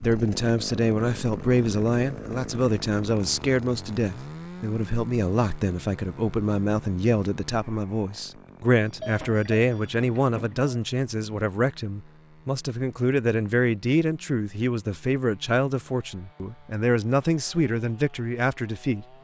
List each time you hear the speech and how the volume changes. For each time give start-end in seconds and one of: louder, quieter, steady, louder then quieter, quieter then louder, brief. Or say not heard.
0.0-19.1 steady.